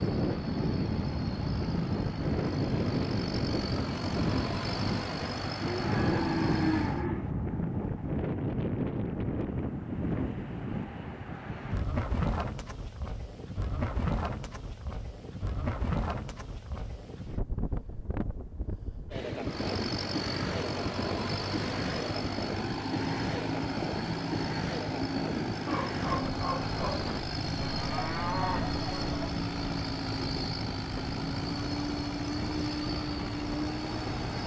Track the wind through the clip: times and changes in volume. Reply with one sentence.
You can hear the wind from 0.0 to 34.4 s, getting quieter.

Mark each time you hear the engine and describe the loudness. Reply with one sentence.
The engine can be heard from 0.0 to 7.0 s, getting louder; and from 19.4 to 34.4 s, at a steady volume.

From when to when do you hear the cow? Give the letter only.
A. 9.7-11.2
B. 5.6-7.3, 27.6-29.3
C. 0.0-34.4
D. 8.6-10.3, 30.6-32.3
B.